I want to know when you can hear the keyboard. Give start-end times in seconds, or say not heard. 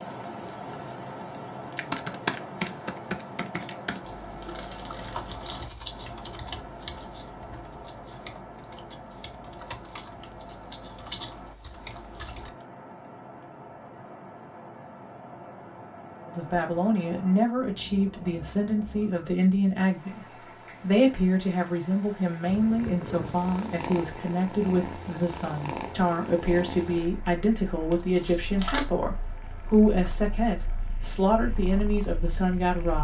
1.8-12.5.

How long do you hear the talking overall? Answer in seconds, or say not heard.
17 s.